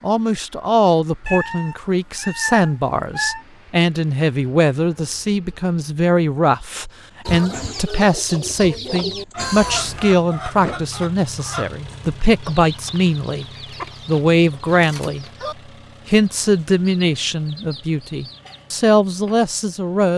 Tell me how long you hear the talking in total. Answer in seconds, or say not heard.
19 s.